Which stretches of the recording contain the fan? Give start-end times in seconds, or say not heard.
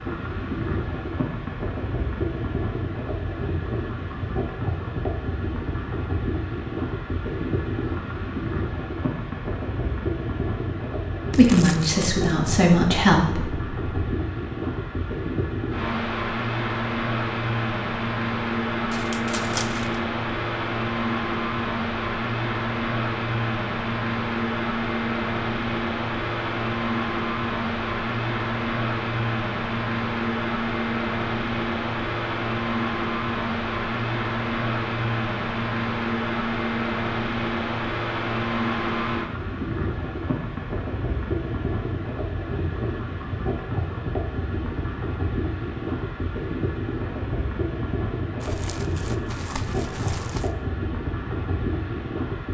0.0-52.5.